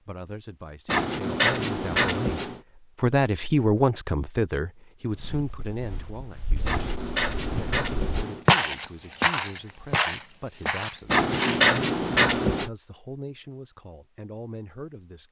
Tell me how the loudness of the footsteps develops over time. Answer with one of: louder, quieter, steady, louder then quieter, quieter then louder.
louder then quieter.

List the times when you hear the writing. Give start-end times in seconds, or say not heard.
0.8-2.6, 6.7-8.4, 11.1-12.7.